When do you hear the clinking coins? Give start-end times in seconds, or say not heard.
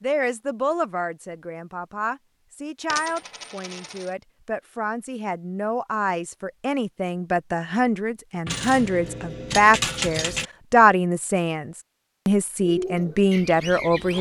2.9-4.1, 8.4-10.5.